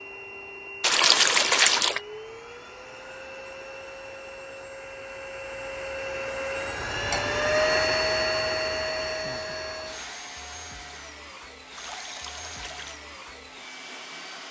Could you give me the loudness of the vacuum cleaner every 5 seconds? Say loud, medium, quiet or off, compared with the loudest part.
quiet, loud, quiet.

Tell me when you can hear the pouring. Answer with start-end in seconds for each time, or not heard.
0.8-2.0, 6.8-7.6, 11.8-13.0.